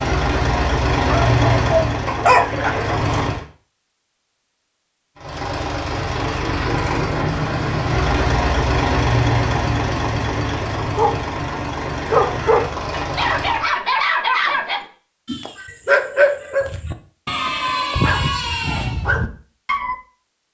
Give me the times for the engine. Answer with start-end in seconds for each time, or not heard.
0.0-3.5, 5.2-13.7.